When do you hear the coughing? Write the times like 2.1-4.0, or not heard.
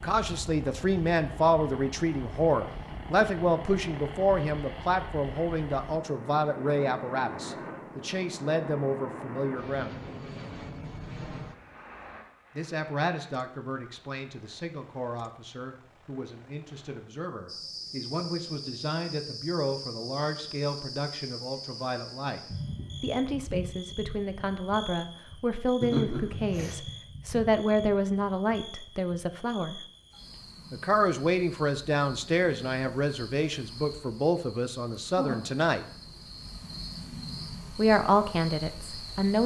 25.8-26.8.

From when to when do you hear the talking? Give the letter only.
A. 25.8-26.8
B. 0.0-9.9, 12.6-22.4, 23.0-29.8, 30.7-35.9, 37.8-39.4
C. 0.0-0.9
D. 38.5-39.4
B.